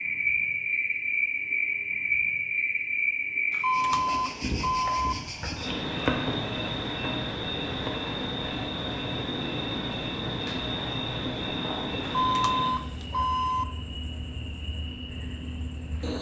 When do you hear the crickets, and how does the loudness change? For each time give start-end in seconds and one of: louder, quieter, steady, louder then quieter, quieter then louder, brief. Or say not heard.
0.0-16.1 quieter.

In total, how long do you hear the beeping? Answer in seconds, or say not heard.
3 s.